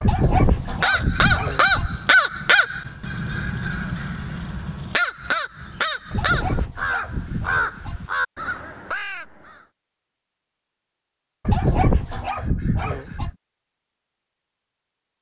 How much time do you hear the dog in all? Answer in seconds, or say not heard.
6 s.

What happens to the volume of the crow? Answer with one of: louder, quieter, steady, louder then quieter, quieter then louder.
quieter.